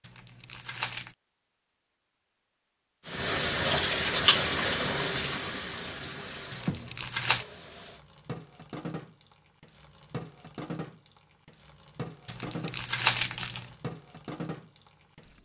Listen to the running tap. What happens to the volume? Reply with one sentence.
The volume of the running tap goes down.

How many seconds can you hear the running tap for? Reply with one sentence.
The running tap can be heard for 12 seconds in total.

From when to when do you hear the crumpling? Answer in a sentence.
The crumpling can be heard from 0.0 to 1.1 s, from 6.5 to 7.5 s and from 12.2 to 13.7 s.